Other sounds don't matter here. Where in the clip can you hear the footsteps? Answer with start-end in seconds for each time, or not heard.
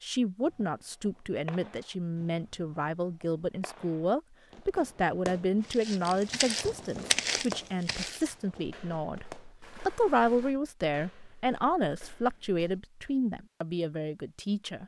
5.7-13.2.